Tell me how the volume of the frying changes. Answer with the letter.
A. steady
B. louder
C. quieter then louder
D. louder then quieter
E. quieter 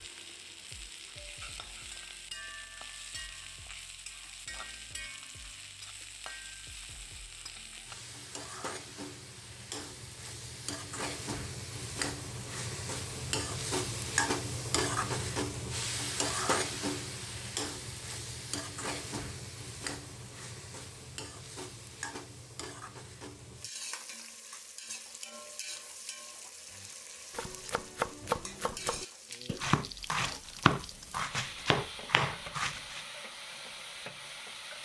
D.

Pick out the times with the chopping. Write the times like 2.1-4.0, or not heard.
26.7-33.0.